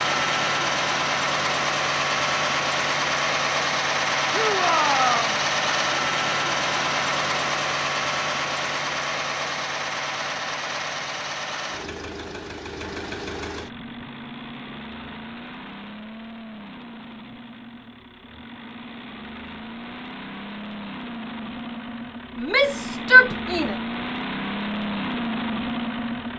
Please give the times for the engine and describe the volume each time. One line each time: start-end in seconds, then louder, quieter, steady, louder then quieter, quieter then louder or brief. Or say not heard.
0.0-26.3 quieter then louder.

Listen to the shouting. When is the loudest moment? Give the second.
23 s.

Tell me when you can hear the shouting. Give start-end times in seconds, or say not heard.
4.3-5.4, 22.4-23.8.